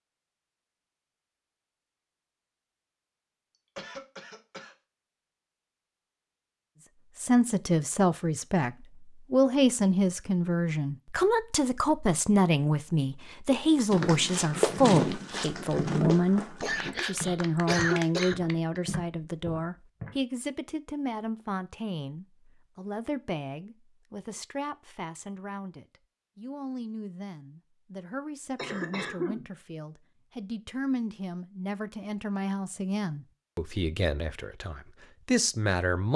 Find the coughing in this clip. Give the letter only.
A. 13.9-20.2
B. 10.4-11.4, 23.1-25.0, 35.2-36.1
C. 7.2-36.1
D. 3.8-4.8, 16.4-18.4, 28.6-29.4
D.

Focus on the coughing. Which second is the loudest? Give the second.
18 s.